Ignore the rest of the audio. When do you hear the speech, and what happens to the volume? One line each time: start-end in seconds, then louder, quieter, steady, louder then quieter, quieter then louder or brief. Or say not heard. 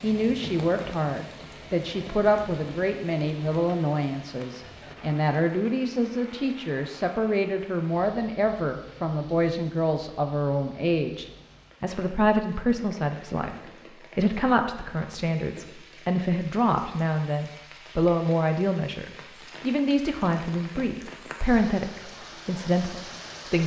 0.0-23.6 steady.